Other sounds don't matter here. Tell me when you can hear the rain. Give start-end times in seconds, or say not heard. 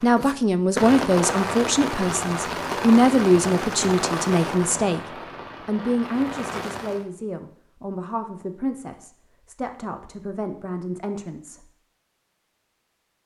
0.0-7.0.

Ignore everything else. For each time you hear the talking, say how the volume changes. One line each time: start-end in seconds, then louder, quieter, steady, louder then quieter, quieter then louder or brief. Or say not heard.
0.0-11.7 quieter.